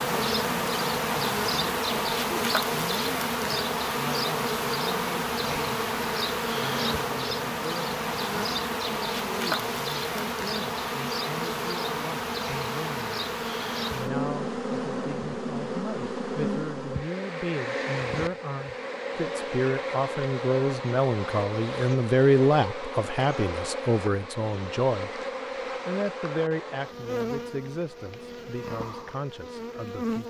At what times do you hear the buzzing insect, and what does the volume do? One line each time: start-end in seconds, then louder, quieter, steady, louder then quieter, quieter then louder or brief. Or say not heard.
0.0-30.2 quieter.